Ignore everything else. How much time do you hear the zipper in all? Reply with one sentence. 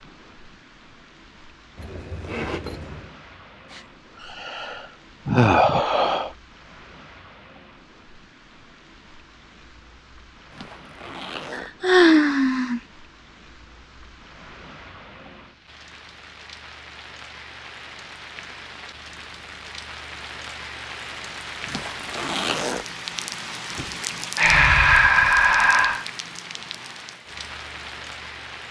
You can hear the zipper for 4 seconds altogether.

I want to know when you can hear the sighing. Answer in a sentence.
The sighing can be heard from 3.7 to 6.3 s, from 11.5 to 12.8 s and from 24.4 to 26.1 s.